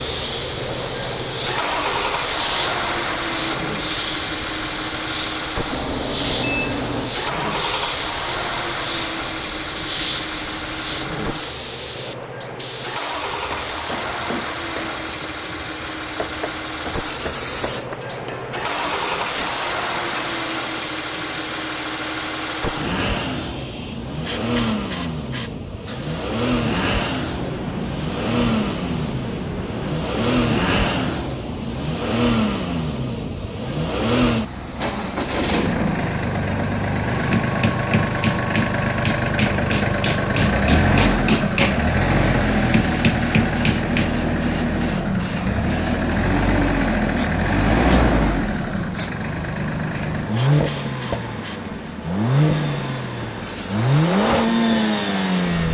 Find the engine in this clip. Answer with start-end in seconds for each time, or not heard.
0.0-55.7.